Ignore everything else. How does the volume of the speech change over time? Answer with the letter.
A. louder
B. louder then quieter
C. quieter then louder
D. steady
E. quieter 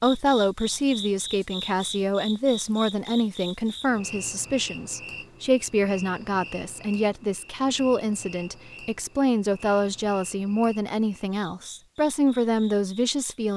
D.